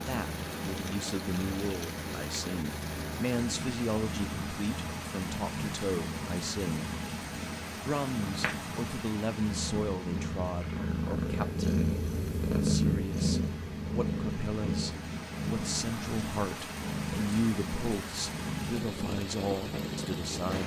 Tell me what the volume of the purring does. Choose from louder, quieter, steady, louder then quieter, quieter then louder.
louder then quieter.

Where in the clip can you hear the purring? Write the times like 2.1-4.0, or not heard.
0.0-20.6.